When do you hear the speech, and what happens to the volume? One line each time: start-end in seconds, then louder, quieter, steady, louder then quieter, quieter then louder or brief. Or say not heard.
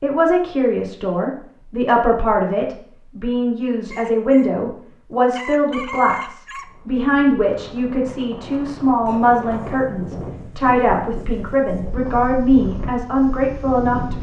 0.0-14.1 steady.